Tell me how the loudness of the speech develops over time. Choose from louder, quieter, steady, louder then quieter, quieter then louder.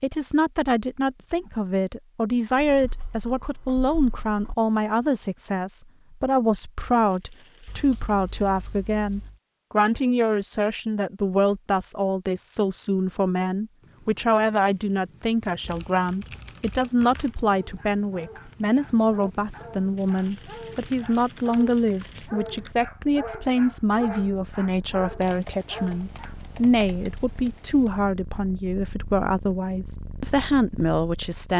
steady.